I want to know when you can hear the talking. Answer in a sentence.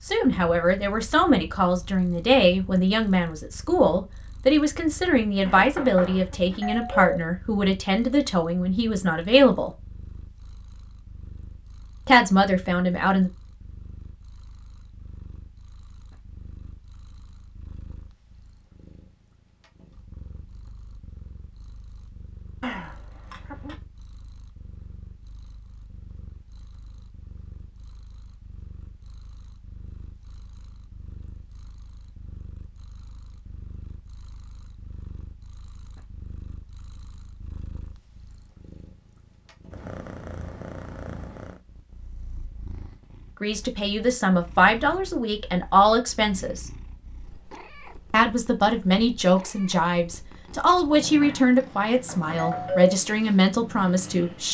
You can hear the talking from 0.1 to 9.7 s, from 12.1 to 13.3 s, from 43.4 to 46.6 s and from 48.1 to 54.4 s.